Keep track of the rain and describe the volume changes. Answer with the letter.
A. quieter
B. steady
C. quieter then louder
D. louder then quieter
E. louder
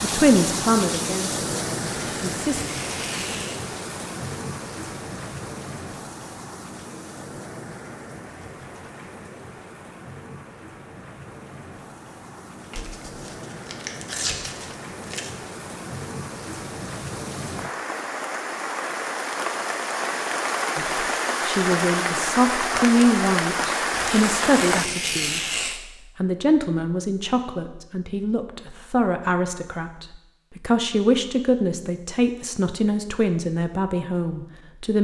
C.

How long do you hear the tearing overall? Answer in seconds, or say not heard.
6 s.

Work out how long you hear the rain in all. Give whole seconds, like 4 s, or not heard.
25 s.